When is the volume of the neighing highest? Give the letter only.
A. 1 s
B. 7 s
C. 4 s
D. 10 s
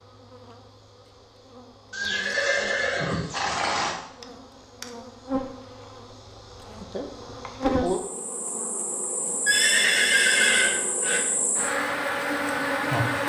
D.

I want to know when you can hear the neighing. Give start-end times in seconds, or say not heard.
1.9-4.0, 9.4-11.2.